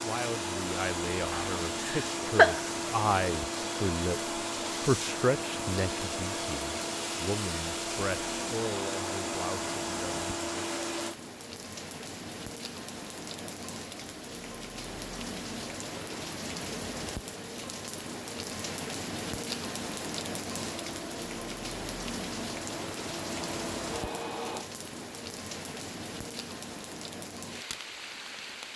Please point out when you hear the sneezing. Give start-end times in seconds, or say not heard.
1.3-2.6.